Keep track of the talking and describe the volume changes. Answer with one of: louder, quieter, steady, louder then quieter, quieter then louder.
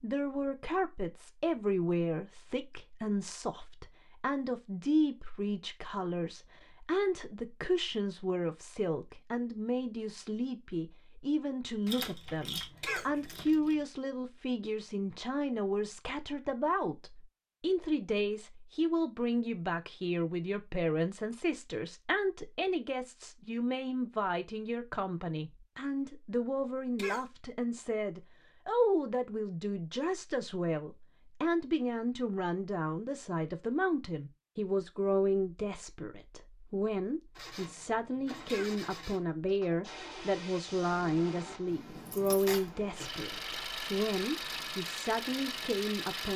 steady.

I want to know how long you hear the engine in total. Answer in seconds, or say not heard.
9 s.